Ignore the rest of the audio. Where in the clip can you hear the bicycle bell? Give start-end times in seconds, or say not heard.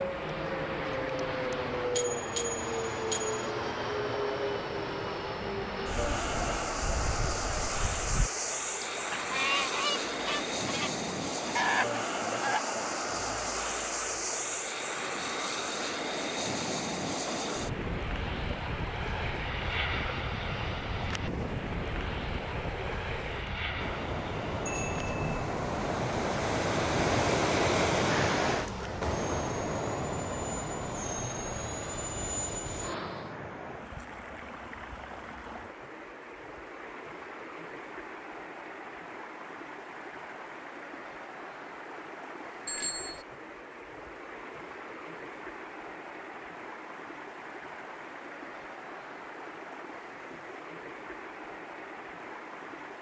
1.1-3.4, 24.6-25.5, 42.6-43.2.